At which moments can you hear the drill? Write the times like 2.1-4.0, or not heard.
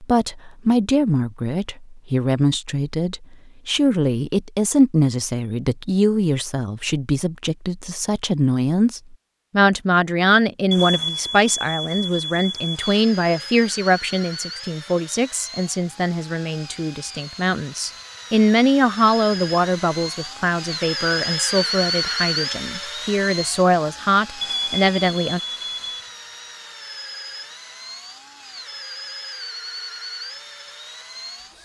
12.7-31.5.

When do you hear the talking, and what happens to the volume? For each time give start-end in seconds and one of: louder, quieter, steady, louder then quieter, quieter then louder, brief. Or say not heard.
0.0-25.4 steady.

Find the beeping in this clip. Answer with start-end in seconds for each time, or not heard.
10.7-12.9, 24.4-26.1.